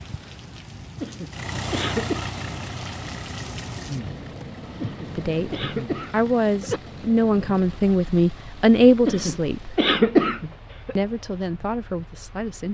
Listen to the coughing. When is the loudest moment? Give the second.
10 s.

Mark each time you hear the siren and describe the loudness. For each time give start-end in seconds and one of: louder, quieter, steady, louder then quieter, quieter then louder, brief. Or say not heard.
not heard.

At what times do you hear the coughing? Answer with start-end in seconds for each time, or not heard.
1.0-2.3, 4.8-6.8, 9.1-10.9.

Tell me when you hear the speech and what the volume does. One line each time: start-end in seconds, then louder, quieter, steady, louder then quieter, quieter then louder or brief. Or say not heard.
5.2-9.8 louder
10.9-12.6 brief.